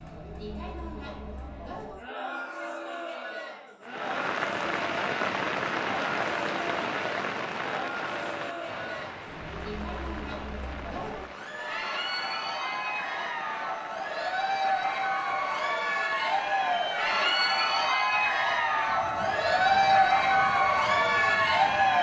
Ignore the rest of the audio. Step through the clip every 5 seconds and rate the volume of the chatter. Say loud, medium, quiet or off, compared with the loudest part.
quiet, quiet, medium, loud, loud.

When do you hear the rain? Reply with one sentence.
The rain can be heard from 3.8 to 21.9 s.